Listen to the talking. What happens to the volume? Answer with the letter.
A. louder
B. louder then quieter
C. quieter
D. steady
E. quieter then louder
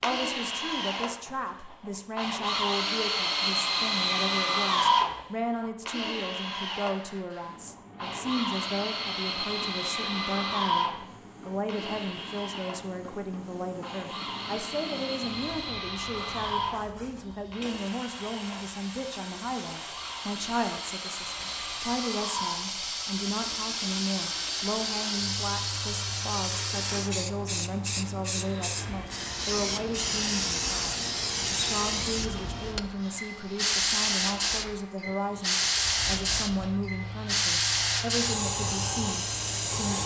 D.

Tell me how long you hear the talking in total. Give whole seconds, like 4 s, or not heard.
40 s.